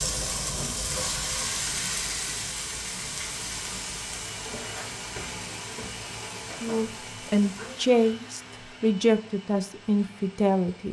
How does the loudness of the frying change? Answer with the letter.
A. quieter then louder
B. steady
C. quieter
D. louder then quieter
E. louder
C.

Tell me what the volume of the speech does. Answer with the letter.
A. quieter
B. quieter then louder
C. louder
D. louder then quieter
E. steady
E.